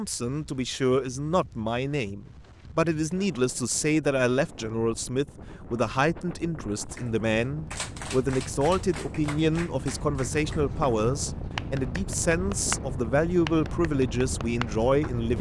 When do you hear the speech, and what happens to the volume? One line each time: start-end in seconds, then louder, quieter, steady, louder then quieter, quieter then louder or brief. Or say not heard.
0.0-15.3 steady.